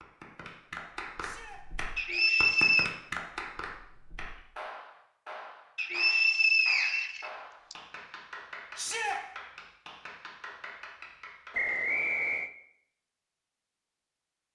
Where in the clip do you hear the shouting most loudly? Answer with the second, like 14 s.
9 s.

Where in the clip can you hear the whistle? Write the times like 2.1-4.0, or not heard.
1.9-2.9, 5.8-7.8, 11.5-12.5.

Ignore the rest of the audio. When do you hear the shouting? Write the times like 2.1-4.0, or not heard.
1.1-1.6, 8.8-9.2.